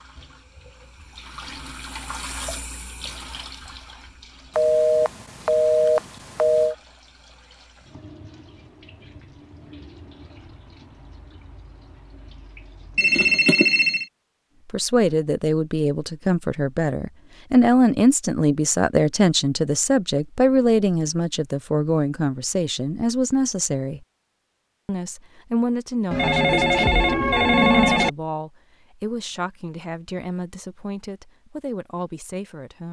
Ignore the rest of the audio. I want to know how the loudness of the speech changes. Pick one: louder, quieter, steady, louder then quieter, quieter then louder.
quieter.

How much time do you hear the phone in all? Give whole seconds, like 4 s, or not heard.
5 s.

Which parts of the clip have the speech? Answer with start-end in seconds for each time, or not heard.
14.7-24.1, 24.9-32.8.